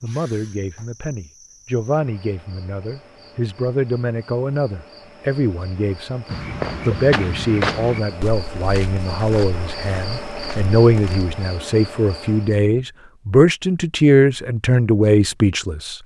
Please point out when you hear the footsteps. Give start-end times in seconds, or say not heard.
6.2-11.3.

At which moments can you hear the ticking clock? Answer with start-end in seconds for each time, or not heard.
not heard.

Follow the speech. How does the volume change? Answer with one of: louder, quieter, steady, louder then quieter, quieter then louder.
louder.